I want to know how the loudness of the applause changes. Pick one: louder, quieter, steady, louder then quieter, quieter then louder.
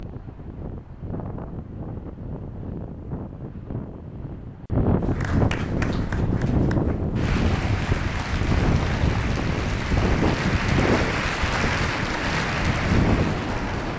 louder.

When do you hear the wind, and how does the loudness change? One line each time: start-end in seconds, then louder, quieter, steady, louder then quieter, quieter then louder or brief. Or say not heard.
0.0-13.9 louder.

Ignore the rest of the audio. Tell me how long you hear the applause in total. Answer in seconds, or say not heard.
9 s.